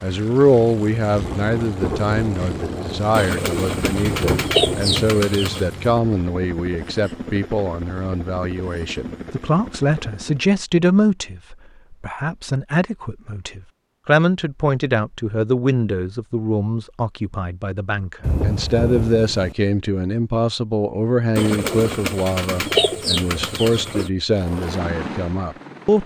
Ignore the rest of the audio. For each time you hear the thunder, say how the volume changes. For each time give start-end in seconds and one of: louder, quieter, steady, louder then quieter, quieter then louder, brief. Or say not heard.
1.1-5.2 quieter then louder
18.2-19.6 brief.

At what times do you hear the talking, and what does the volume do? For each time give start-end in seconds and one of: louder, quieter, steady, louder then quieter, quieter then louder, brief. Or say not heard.
0.0-26.0 steady.